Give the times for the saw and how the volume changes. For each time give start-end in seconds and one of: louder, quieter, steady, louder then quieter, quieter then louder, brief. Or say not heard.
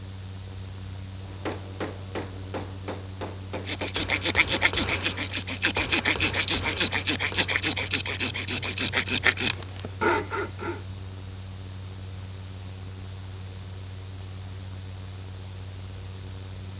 3.5-10.8 steady.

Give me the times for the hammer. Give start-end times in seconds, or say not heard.
1.2-7.5.